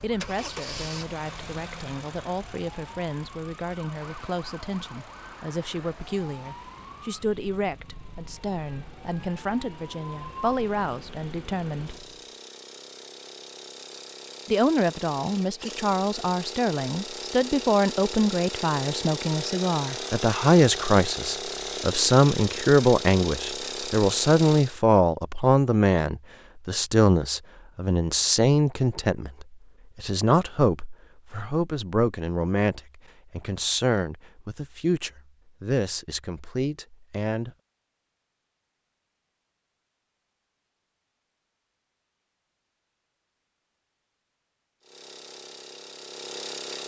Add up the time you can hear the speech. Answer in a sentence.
The speech can be heard for 35 seconds in total.